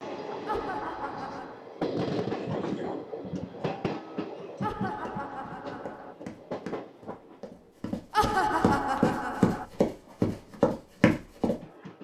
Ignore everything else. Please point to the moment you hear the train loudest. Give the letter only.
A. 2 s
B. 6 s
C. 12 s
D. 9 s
A.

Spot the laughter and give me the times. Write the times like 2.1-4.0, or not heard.
0.5-1.6, 4.6-6.2, 8.1-9.7.